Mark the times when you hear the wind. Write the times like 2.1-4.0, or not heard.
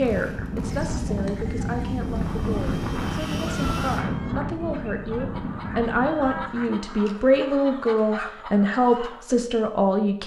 0.0-6.8.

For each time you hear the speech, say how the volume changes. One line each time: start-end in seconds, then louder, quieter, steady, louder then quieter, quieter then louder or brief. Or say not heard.
0.0-10.2 louder.